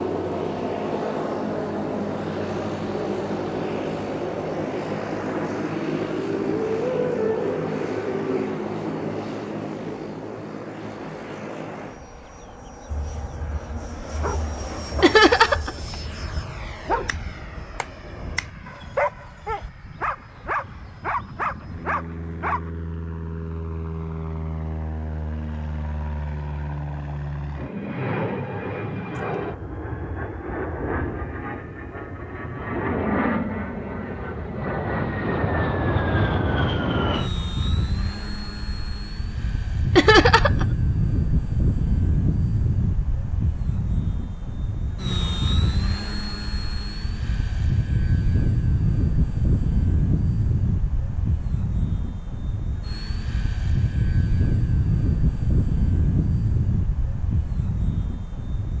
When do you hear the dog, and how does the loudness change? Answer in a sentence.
The dog can be heard from 12.8 to 22.7 s, getting louder.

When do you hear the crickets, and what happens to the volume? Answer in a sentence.
You can't hear the crickets here.